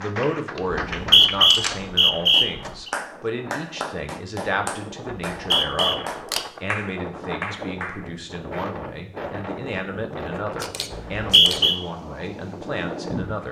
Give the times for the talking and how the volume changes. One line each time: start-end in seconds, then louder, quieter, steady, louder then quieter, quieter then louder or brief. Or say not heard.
0.0-13.4 steady.